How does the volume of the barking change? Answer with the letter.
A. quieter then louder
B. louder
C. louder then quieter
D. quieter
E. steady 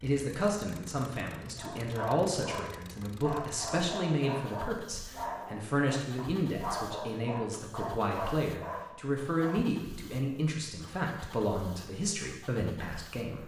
E.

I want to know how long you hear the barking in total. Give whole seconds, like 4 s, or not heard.
8 s.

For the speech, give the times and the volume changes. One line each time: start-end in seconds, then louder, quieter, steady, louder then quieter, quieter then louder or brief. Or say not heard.
0.0-13.4 steady.